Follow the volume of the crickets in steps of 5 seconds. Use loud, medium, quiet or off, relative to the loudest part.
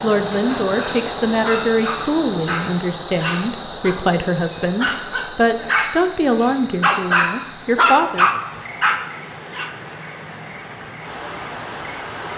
loud, medium, quiet.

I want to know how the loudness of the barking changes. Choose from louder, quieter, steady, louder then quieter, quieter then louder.
louder.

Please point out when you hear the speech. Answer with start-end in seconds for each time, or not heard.
0.0-8.3.